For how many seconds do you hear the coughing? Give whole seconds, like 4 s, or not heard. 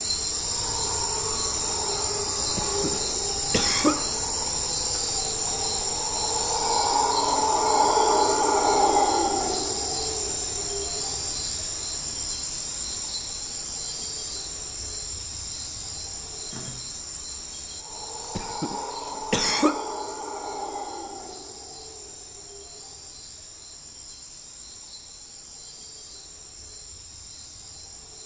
3 s.